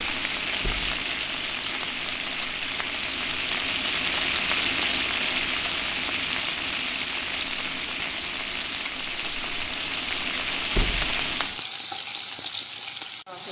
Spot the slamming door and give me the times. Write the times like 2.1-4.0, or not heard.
0.6-1.0, 10.7-11.2.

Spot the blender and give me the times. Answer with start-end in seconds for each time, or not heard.
not heard.